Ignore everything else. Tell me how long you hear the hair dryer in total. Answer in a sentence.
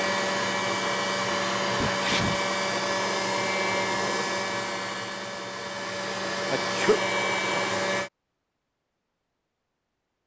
You can hear the hair dryer for 8 seconds altogether.